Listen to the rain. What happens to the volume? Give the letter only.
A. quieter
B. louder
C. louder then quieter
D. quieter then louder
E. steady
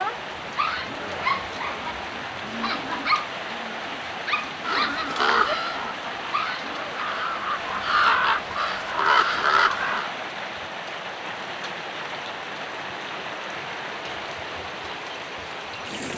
E.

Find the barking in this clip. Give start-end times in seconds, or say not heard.
0.4-7.0.